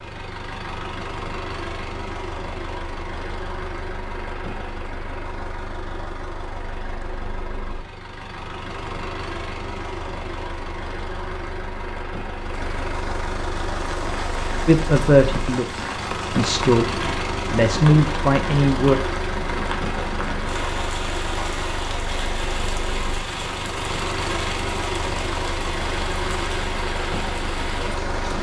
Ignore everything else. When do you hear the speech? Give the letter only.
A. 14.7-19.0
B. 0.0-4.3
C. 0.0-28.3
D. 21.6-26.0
A.